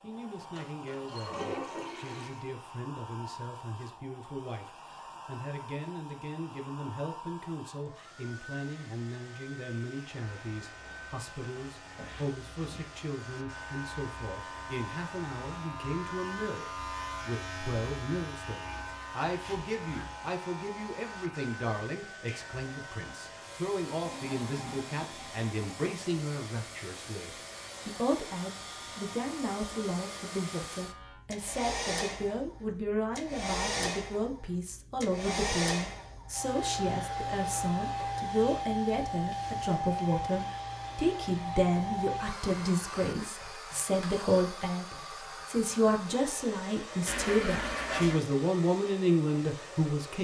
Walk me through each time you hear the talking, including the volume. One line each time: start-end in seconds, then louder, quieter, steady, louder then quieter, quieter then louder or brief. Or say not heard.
0.0-50.1 louder.